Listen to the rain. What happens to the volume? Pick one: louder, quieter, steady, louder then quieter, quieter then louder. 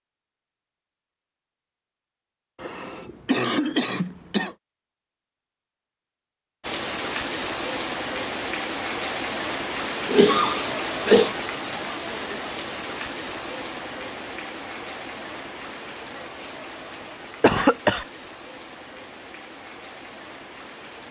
quieter.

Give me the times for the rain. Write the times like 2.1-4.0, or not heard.
6.6-21.0.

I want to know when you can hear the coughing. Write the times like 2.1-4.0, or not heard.
2.6-4.5, 10.1-11.3, 17.4-18.1.